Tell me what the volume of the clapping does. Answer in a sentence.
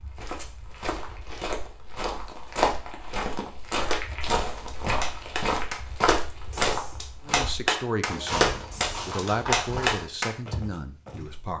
The loudness of the clapping goes up.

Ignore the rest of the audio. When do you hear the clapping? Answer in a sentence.
You can hear the clapping from 3.9 to 10.3 s.